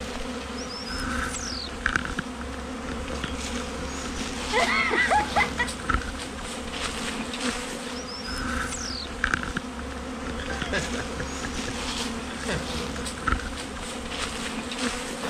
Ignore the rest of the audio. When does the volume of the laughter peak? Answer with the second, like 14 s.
5 s.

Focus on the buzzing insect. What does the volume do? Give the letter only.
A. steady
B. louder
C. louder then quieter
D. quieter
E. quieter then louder
A.